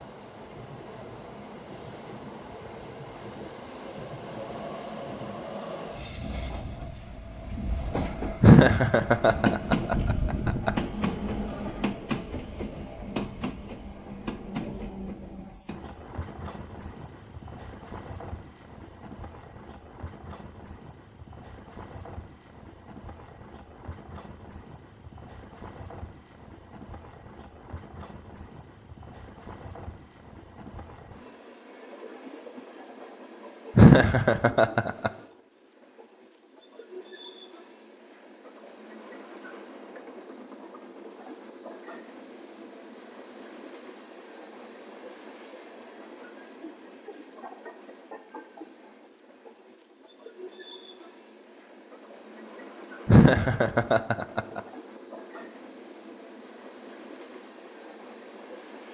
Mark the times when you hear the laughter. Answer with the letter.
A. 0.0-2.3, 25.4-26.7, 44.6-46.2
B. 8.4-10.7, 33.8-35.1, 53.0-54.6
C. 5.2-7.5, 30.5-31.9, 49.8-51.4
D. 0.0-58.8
B.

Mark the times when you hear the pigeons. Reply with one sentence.
The pigeons can't be heard in this clip.